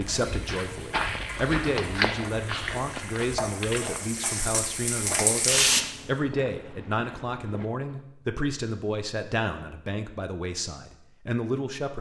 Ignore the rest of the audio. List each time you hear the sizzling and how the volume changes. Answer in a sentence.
The sizzling can be heard from 0.1 to 5.8 s, getting louder.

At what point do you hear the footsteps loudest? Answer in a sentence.
The loudest moment of the footsteps is at 2 seconds.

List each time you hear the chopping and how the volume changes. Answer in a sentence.
The chopping can't be heard in this clip.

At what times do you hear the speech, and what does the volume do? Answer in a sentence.
The speech can be heard from 0.0 to 11.9 s, at a steady volume.